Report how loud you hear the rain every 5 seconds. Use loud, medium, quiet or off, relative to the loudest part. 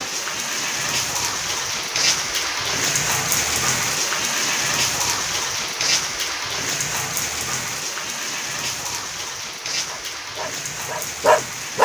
loud, loud, medium.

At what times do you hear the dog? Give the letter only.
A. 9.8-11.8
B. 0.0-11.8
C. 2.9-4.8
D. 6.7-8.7
A.